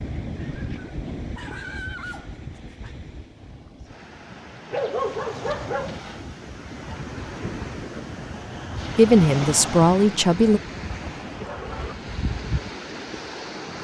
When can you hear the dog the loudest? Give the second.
5 s.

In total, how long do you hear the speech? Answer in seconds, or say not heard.
2 s.